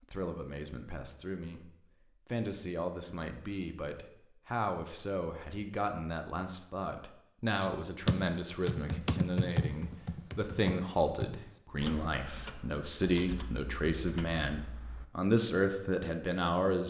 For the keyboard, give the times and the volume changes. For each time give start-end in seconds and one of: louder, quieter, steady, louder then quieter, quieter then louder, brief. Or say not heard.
7.6-15.1 quieter.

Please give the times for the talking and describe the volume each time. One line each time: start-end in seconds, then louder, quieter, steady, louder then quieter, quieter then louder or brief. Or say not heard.
0.0-16.8 louder.